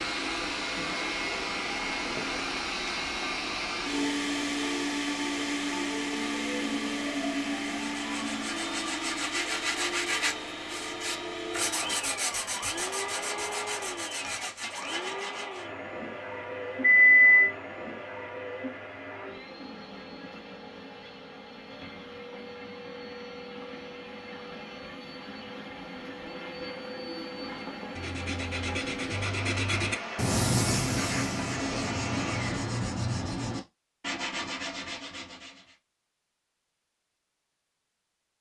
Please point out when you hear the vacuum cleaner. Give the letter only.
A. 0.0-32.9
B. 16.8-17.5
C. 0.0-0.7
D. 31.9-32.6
A.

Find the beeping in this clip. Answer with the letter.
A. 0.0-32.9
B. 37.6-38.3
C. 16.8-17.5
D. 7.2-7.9
C.